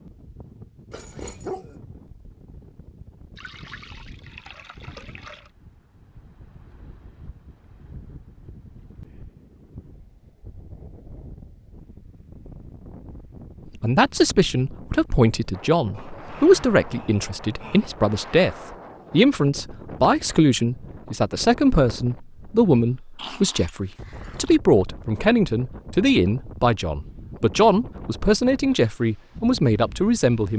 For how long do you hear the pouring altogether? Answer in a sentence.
The pouring can be heard for 2 seconds in total.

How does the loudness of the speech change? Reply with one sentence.
The loudness of the speech stays about the same.